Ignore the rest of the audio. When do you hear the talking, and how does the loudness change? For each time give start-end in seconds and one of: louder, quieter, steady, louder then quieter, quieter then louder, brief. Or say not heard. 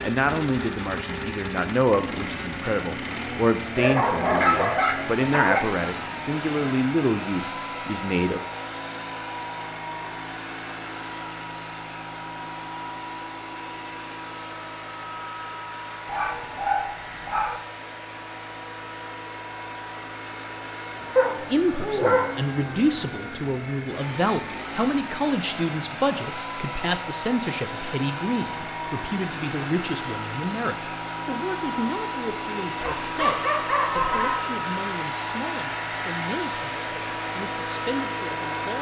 0.0-8.4 steady
21.5-38.7 quieter.